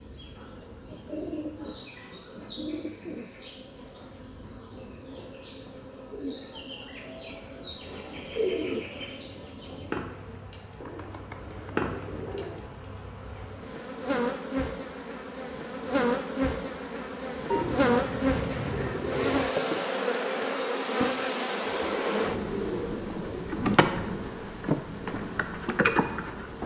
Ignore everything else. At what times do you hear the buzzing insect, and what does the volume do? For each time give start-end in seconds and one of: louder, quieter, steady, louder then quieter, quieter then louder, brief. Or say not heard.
0.0-26.6 louder.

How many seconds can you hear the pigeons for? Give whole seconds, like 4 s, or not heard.
11 s.